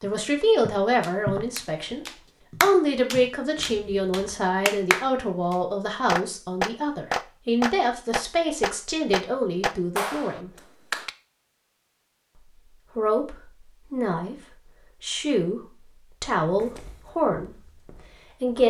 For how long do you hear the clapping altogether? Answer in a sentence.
You can hear the clapping for 10 seconds altogether.